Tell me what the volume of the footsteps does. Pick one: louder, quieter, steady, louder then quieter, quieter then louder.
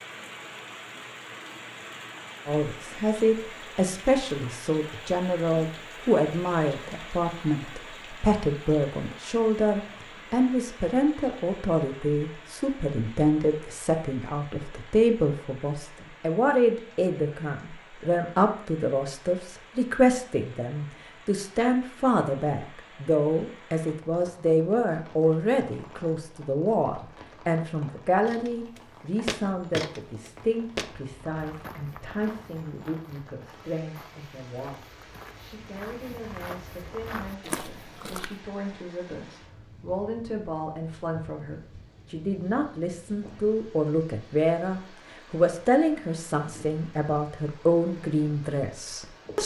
quieter then louder.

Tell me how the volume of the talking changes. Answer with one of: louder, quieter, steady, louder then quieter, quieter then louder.
quieter then louder.